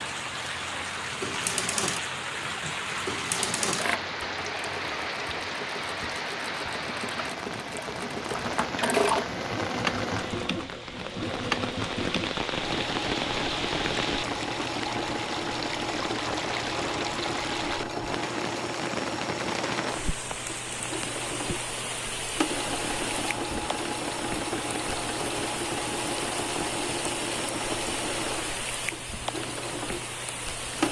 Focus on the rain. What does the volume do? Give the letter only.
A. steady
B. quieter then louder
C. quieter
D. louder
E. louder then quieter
A.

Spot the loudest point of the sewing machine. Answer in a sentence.
The volume of the sewing machine peaks at 9 seconds.